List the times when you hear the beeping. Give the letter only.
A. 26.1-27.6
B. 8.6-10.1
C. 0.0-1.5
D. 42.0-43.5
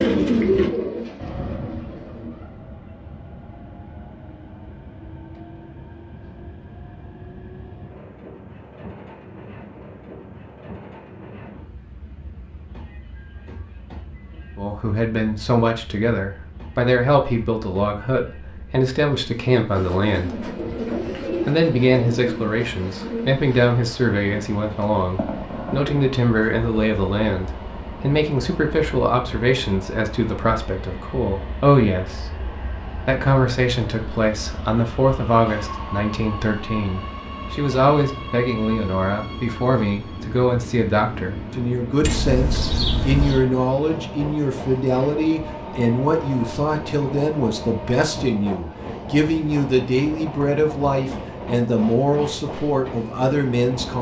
D.